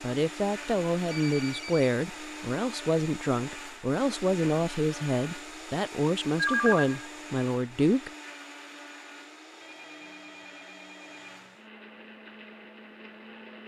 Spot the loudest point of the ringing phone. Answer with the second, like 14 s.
7 s.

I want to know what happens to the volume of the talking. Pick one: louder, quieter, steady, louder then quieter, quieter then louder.
steady.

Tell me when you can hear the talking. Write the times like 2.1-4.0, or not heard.
0.0-8.1.